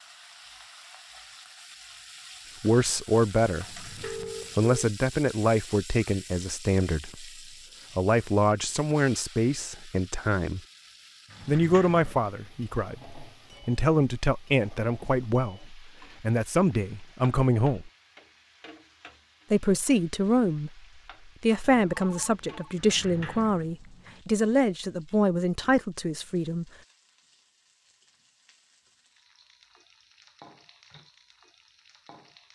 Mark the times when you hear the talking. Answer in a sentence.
You can hear the talking from 2.6 to 3.9 s, from 4.5 to 7.3 s, from 8.0 to 10.6 s, from 11.4 to 17.9 s and from 19.5 to 26.6 s.